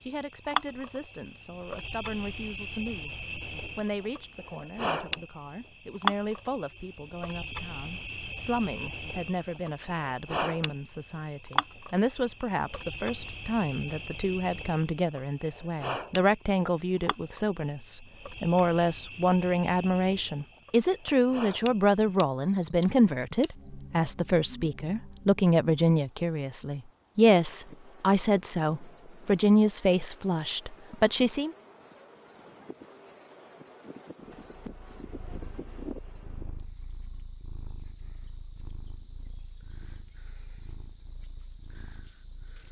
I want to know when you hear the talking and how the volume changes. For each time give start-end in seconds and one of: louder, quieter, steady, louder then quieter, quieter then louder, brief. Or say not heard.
0.0-31.6 louder.